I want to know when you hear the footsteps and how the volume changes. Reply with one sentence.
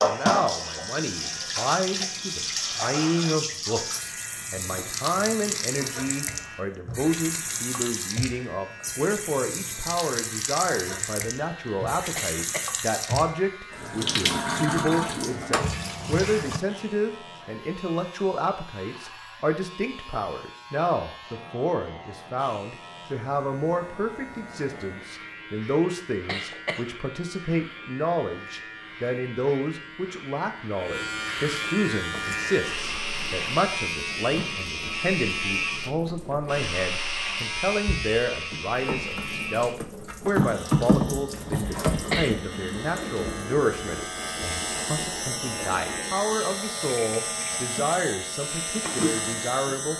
You can't hear the footsteps here.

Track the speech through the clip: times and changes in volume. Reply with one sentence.
You can hear the speech from 0.0 to 49.9 s, at a steady volume.